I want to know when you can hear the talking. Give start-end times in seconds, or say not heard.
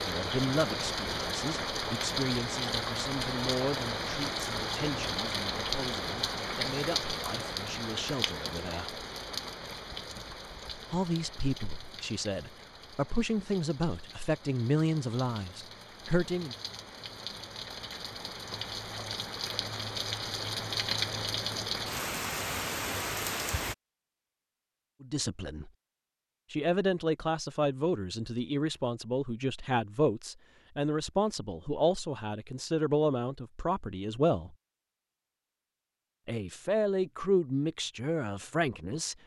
0.0-9.1, 10.9-16.6, 25.0-25.7, 26.5-34.5, 36.2-39.1.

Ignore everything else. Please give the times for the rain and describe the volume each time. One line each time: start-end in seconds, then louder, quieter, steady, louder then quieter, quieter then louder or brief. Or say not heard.
0.0-23.8 quieter then louder.